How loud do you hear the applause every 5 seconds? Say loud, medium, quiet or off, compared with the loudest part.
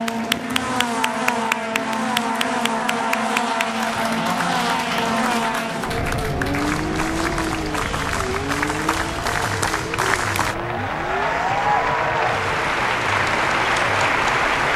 medium, medium, loud.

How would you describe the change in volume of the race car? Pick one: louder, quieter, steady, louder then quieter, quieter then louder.
quieter.